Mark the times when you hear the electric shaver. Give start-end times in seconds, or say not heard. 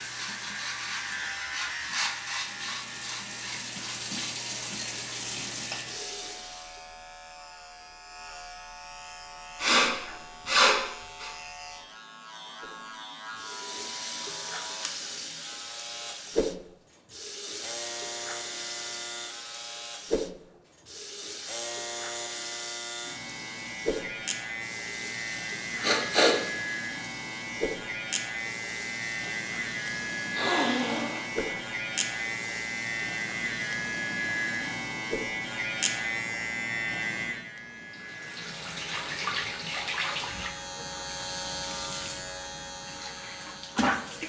0.0-44.2.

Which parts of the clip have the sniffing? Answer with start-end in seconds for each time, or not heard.
9.6-11.3, 25.8-26.4, 30.3-31.6.